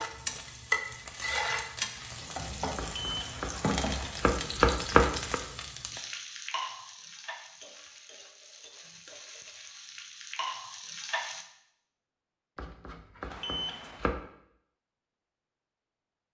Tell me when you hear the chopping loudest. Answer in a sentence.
The volume of the chopping peaks at 5 seconds.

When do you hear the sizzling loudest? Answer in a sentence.
The volume of the sizzling peaks at 1 second.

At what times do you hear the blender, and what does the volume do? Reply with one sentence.
You can't hear the blender here.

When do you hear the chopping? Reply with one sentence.
You can hear the chopping from 2.8 to 5.3 s and from 12.6 to 14.2 s.